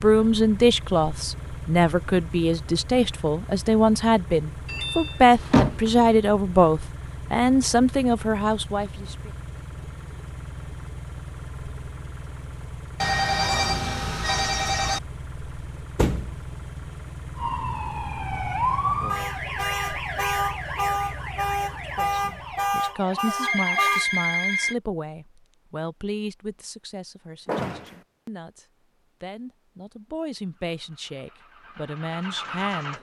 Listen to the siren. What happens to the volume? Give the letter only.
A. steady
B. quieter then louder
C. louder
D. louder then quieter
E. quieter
A.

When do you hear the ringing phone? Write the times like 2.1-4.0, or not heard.
13.0-15.0, 23.4-24.8.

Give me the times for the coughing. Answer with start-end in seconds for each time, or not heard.
not heard.